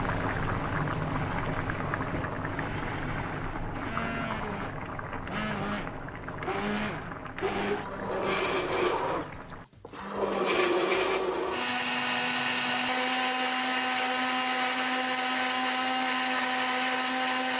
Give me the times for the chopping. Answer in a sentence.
The chopping can't be heard in this clip.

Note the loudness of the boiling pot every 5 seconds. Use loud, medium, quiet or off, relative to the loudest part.
loud, medium, off, off.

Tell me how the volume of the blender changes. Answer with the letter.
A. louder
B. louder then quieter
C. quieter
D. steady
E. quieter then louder
A.